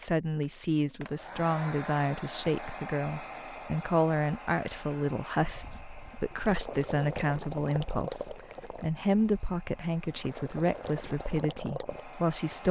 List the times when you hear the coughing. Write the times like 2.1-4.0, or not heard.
not heard.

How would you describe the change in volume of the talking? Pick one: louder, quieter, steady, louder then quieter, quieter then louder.
steady.